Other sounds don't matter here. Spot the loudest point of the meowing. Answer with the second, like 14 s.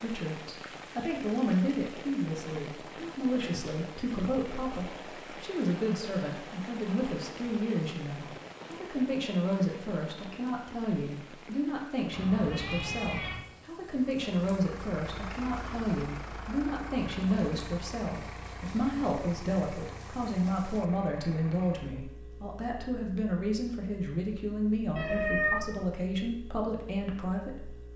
25 s.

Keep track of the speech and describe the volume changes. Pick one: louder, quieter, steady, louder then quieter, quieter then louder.
steady.